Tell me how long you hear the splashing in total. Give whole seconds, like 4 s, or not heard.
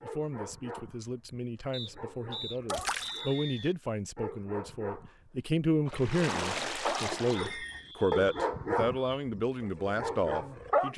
2 s.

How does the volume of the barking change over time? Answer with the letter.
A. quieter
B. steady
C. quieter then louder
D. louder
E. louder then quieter
D.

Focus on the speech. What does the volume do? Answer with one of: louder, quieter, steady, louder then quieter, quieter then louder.
louder.